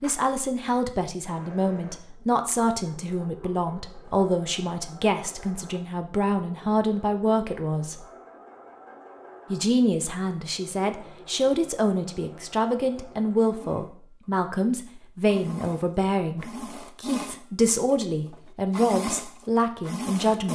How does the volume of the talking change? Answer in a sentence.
The loudness of the talking stays about the same.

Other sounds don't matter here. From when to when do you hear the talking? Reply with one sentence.
You can hear the talking from 0.0 to 8.1 s and from 9.5 to 20.5 s.